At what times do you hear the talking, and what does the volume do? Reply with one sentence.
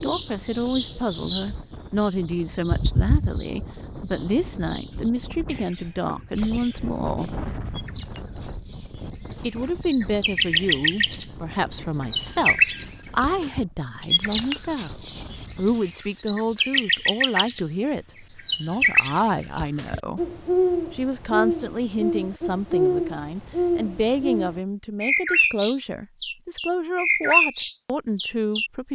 The talking can be heard from 0.0 to 7.3 s, at a steady volume; from 9.4 to 20.2 s, at a steady volume; and from 20.9 to 28.9 s, at a steady volume.